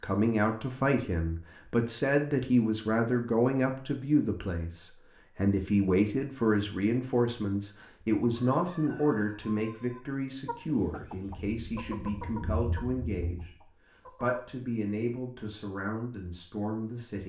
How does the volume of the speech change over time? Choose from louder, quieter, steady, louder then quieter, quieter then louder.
quieter.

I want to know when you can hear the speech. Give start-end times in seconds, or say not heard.
0.0-17.2.